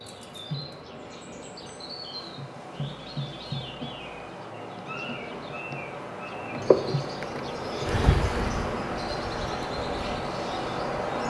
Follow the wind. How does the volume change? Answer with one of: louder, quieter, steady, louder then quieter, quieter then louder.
louder.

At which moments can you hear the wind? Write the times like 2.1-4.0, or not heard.
0.0-11.2.